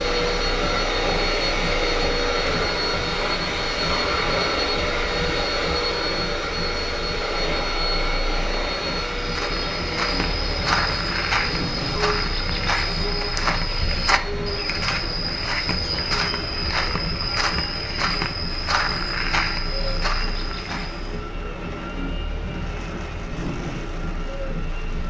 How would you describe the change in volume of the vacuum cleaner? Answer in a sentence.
The volume of the vacuum cleaner goes down.